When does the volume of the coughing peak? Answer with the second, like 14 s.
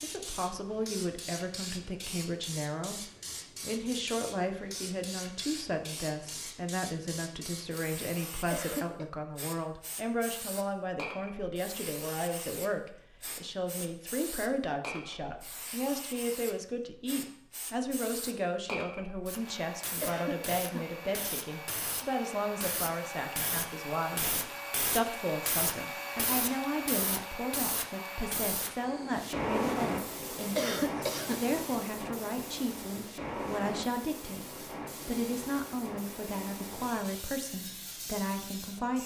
31 s.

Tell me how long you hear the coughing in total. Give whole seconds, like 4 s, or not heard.
2 s.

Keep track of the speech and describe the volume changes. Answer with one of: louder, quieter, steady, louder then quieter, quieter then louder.
steady.